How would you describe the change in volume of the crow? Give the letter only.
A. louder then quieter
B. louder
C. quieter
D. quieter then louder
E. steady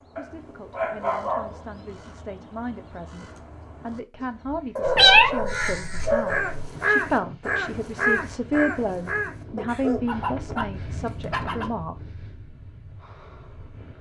B.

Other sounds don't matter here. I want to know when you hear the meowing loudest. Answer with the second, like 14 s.
5 s.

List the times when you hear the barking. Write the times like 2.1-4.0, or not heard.
0.1-1.6, 4.8-6.5, 9.6-11.7.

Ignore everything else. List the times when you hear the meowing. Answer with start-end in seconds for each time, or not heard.
4.8-6.7.